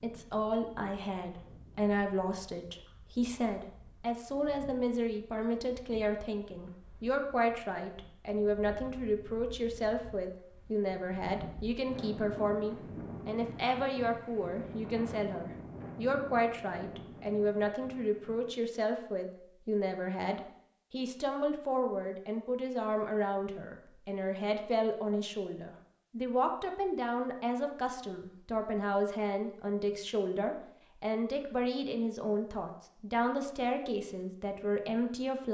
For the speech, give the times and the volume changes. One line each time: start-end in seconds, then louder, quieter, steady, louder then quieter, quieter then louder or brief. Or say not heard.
0.0-35.4 steady.